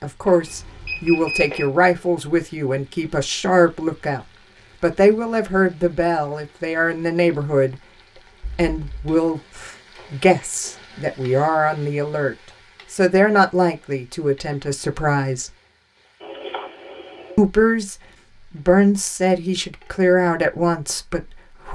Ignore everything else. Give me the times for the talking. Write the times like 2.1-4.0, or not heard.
0.0-15.6, 17.4-21.7.